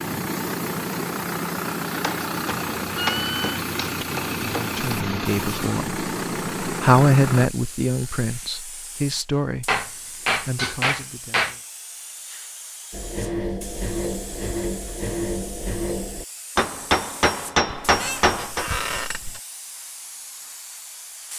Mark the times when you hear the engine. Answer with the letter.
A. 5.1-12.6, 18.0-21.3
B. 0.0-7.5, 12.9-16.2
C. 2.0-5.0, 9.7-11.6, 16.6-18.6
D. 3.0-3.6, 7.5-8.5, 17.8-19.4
B.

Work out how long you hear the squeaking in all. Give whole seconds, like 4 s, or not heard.
3 s.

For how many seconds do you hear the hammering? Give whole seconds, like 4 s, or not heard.
7 s.